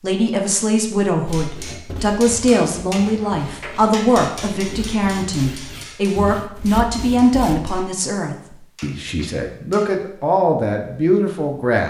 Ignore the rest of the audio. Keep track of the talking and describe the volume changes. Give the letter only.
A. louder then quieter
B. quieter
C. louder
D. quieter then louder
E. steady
E.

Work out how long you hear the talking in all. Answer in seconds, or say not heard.
12 s.